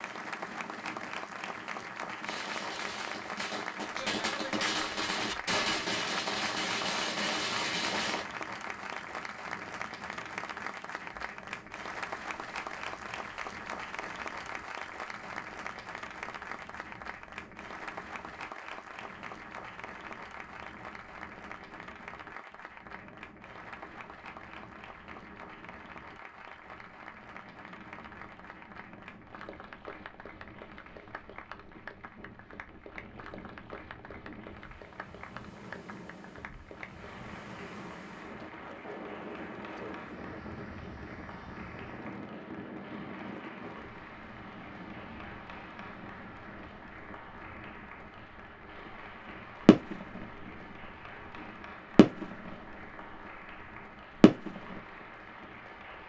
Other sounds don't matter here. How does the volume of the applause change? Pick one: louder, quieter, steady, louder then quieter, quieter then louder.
quieter.